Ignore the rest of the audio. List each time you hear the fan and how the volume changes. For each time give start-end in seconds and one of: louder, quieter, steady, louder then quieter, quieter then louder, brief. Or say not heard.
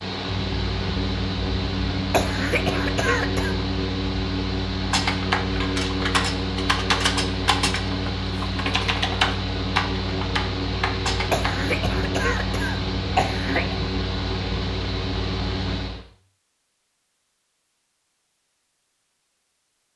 0.0-16.1 steady.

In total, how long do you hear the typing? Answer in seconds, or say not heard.
7 s.